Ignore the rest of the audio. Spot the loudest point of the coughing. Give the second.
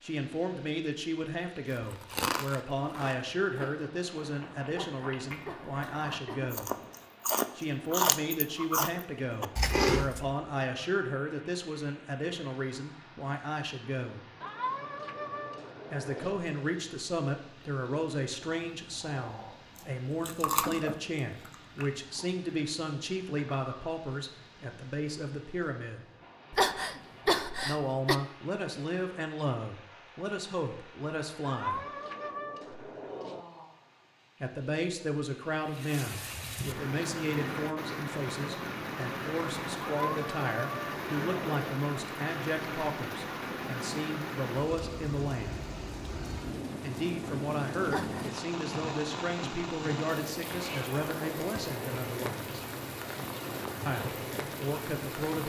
27 s.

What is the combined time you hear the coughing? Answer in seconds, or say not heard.
4 s.